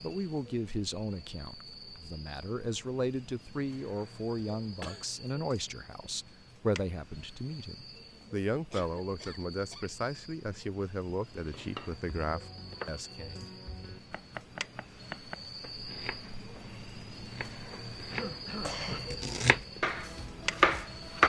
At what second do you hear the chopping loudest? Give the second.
21 s.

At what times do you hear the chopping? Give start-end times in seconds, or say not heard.
11.3-21.2.